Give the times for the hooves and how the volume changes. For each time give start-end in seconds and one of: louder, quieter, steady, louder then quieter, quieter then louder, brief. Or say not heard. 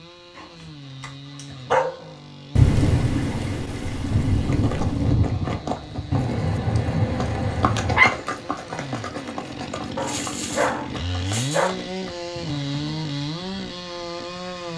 4.4-13.1 quieter.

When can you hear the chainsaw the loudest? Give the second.
13 s.